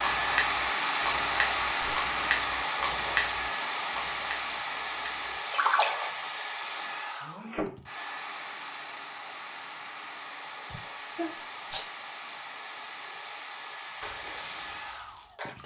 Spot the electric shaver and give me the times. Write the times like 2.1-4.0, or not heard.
not heard.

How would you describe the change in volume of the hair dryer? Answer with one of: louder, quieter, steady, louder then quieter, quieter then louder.
quieter.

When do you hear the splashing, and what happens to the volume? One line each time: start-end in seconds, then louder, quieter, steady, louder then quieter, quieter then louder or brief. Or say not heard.
0.0-6.5 quieter then louder
14.0-15.6 brief.